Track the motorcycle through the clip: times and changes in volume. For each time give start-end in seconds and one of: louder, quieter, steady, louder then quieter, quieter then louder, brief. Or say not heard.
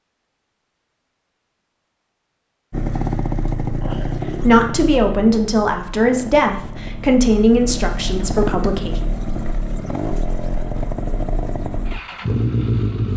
2.7-13.1 quieter then louder.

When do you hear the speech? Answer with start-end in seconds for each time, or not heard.
4.0-9.0.